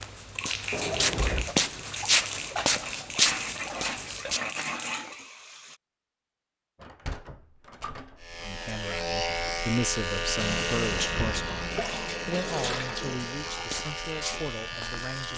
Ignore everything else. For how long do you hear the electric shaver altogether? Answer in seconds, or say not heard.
7 s.